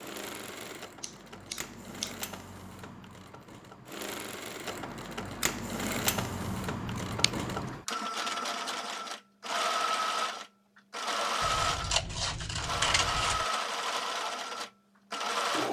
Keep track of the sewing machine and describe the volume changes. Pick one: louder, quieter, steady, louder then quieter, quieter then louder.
louder.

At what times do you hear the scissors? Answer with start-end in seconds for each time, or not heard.
1.0-2.1, 6.0-7.7, 11.4-13.4.